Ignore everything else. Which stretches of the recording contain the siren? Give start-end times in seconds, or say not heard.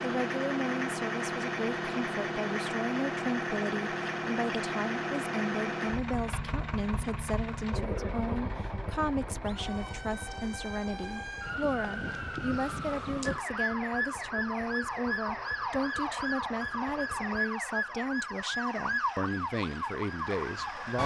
9.4-21.0.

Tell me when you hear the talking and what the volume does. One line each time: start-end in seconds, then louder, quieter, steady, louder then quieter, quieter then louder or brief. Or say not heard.
0.0-21.0 steady.